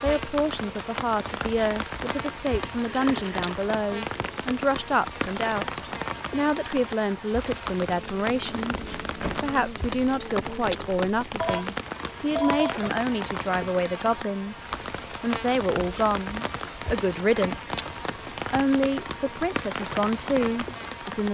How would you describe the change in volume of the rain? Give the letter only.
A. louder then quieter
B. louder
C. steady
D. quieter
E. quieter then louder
C.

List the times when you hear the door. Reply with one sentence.
The door can be heard from 8.3 to 9.5 s.